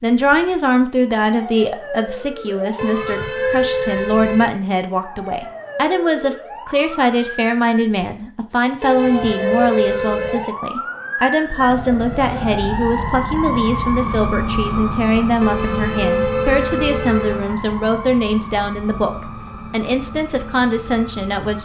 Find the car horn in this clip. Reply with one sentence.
You can hear the car horn from 2.8 to 4.5 s, from 8.8 to 10.5 s and from 15.4 to 17.4 s.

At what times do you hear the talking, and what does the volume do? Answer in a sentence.
You can hear the talking from 0.0 to 21.6 s, at a steady volume.